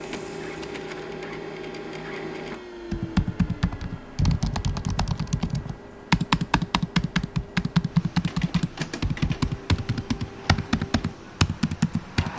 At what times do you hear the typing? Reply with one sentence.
The typing can be heard from 2.9 to 12.3 s.